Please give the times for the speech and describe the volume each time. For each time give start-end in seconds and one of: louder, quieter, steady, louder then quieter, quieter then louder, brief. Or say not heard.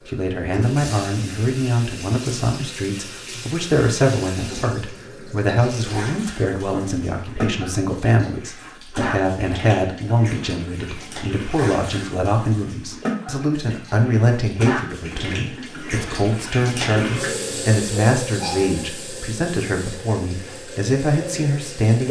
0.1-22.0 steady.